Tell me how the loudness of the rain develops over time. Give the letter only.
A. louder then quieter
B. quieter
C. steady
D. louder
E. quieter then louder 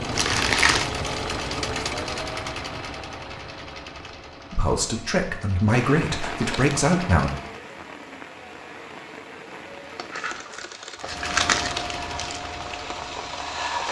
E.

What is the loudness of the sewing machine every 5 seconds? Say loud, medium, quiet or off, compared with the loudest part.
loud, medium, loud.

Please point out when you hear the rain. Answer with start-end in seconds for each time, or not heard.
5.7-13.8.